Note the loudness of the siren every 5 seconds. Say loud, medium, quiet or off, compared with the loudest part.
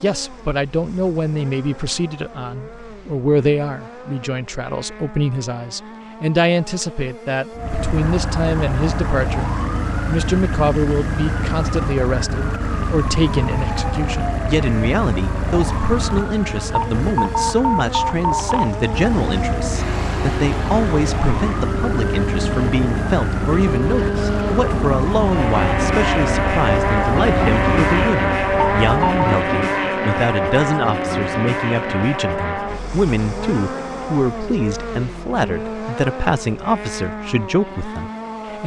off, loud, loud, loud, loud, loud, off, off.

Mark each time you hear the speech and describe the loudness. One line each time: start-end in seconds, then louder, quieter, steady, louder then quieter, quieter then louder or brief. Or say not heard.
0.0-38.6 steady.